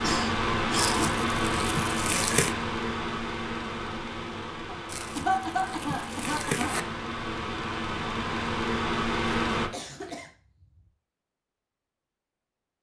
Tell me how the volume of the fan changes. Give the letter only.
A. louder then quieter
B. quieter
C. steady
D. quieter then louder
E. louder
D.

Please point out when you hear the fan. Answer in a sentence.
The fan can be heard from 0.0 to 9.7 s.